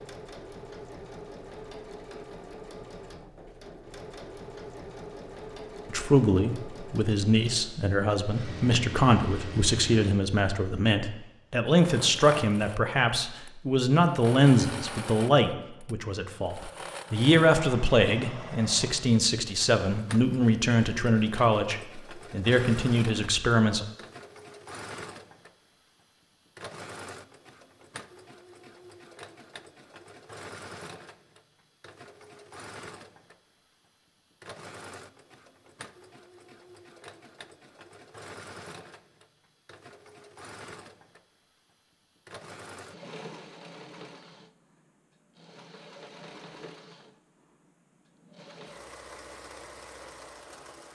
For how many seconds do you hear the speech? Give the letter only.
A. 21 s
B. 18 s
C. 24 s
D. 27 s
B.